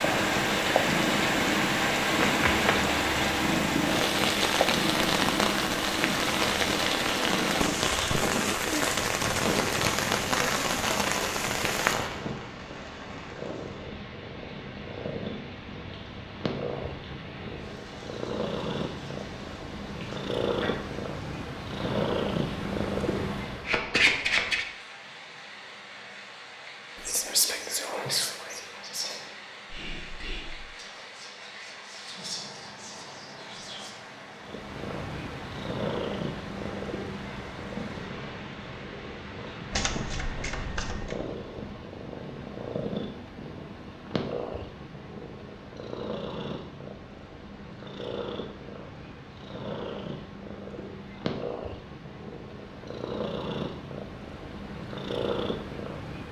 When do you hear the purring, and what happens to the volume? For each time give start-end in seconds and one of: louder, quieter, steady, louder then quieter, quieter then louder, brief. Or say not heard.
0.0-23.8 quieter then louder
34.4-56.2 steady.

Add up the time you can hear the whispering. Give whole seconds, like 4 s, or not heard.
7 s.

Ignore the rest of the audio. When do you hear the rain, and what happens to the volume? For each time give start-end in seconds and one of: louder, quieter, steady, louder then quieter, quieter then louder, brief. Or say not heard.
0.0-40.8 quieter.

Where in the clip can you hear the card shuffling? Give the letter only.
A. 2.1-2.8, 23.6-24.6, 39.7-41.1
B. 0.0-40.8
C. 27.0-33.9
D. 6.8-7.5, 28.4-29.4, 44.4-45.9
A.